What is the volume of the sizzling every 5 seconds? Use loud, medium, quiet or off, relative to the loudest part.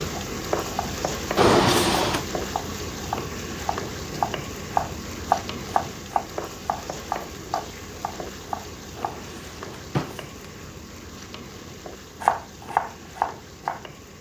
loud, medium, medium.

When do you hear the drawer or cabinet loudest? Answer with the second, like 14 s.
2 s.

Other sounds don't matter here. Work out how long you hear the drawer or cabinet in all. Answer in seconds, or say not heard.
2 s.